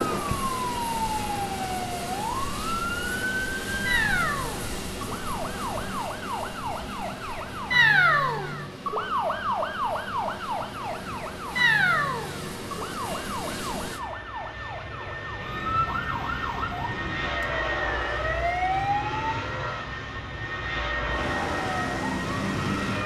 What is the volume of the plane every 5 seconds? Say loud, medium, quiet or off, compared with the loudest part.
loud, medium, medium, loud, loud.